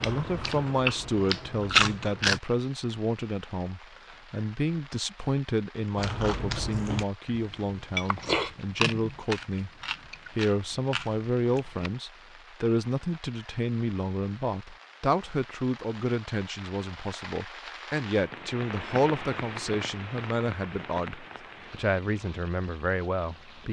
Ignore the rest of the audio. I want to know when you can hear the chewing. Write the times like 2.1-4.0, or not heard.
0.0-2.4, 6.0-11.9.